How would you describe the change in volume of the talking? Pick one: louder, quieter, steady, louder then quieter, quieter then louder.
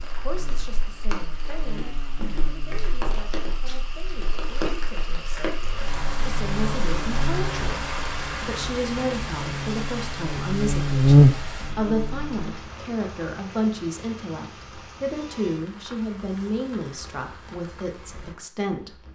louder.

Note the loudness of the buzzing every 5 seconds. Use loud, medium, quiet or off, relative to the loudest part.
quiet, quiet, loud, off.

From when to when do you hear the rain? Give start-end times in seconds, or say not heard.
0.0-19.1.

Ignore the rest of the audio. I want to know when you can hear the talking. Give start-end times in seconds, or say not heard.
0.0-19.1.